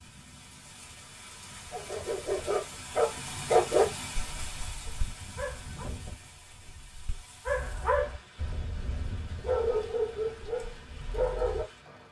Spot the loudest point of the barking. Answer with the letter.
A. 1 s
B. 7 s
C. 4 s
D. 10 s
C.